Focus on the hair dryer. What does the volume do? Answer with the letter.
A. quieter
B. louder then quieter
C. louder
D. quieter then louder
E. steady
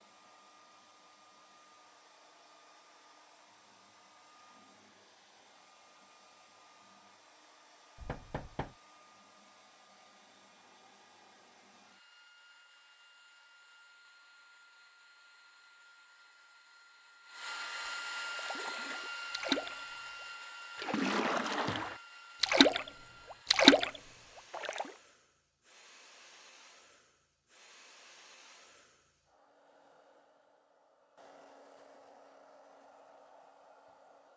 B.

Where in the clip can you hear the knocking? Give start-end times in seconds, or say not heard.
8.0-8.8.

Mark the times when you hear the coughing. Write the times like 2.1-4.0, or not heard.
not heard.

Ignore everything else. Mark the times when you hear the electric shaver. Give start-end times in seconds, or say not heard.
not heard.